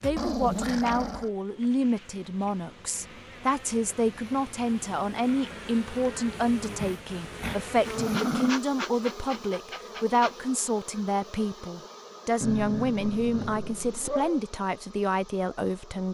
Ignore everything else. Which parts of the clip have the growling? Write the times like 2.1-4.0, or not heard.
0.0-1.3, 6.6-8.6, 12.4-14.4.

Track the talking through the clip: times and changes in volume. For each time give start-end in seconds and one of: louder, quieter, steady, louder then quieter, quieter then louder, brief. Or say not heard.
0.0-16.0 steady.